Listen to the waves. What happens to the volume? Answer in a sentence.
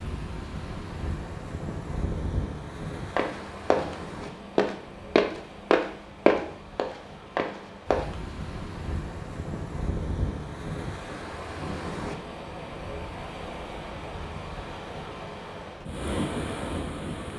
The loudness of the waves goes down, then up.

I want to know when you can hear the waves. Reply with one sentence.
You can hear the waves from 0.0 to 17.3 s.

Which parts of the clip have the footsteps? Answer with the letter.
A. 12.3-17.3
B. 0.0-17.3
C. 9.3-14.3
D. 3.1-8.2
D.